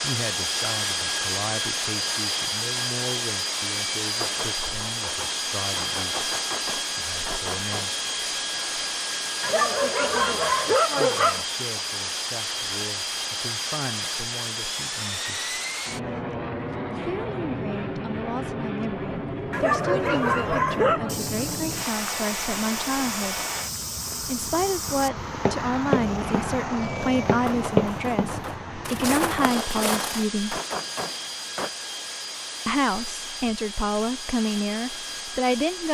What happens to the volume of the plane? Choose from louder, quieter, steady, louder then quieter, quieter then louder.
quieter.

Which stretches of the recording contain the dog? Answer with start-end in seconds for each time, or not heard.
9.4-11.4, 19.5-21.1.